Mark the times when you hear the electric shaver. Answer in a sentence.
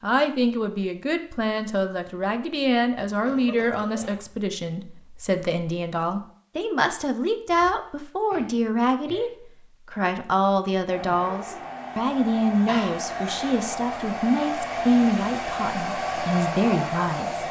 You can't hear the electric shaver here.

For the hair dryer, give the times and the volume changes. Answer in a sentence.
The hair dryer can be heard from 10.8 to 17.4 s, getting louder.